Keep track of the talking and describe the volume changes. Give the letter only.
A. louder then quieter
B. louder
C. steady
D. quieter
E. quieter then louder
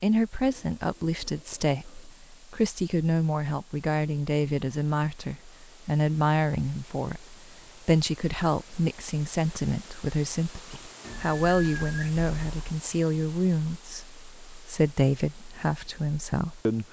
C.